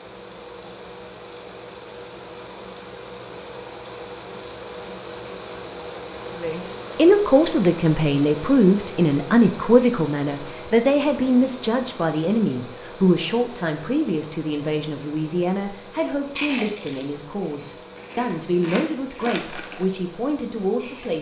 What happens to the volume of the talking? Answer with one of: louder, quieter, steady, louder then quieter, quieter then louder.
quieter.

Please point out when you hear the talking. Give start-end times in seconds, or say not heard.
6.4-21.1.